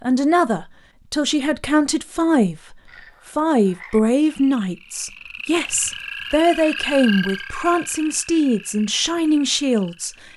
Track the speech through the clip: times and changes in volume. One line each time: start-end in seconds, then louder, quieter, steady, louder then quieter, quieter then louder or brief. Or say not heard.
0.0-10.2 steady.